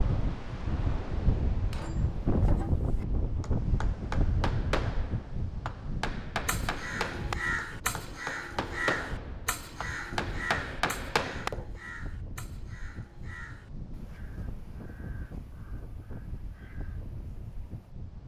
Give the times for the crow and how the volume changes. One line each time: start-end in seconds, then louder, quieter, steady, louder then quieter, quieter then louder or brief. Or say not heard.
6.5-17.9 quieter.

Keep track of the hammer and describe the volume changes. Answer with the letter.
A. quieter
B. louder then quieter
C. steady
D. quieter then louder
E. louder
E.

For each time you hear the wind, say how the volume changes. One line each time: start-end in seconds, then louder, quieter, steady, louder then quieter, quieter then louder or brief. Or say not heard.
0.0-18.2 quieter.